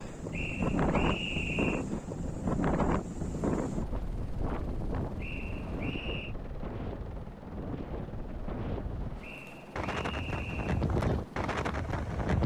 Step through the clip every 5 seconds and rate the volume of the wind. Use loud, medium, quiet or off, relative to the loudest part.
loud, medium, loud.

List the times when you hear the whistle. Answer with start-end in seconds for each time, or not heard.
0.3-1.9, 5.2-6.3, 9.2-10.7.